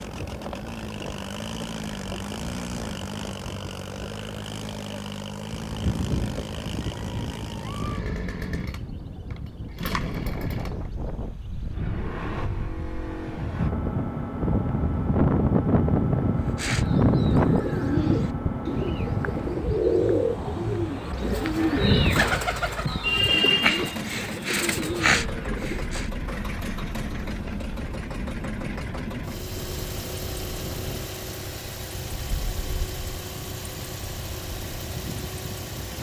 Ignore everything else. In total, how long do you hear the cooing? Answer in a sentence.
The cooing can be heard for 10 seconds in total.